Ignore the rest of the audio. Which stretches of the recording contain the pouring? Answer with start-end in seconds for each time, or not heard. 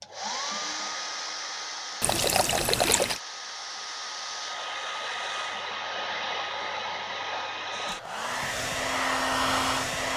2.0-3.2.